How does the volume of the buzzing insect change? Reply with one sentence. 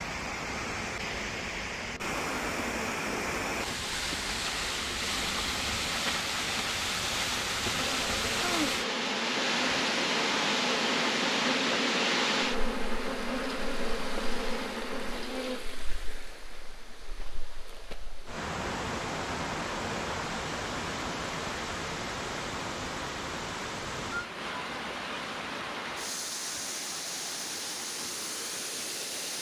The volume of the buzzing insect goes up.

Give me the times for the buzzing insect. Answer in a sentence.
You can hear the buzzing insect from 0.0 to 15.8 s.